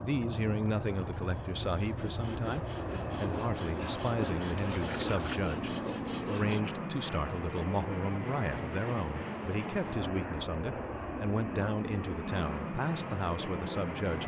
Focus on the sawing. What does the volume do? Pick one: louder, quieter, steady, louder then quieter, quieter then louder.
steady.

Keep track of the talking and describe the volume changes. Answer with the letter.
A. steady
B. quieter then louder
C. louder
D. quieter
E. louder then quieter
A.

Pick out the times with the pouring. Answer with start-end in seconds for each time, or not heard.
4.5-5.4.